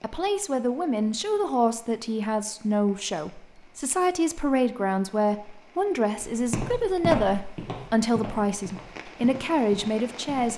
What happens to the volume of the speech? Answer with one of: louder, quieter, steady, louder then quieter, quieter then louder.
steady.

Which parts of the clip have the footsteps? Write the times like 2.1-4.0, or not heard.
6.2-10.5.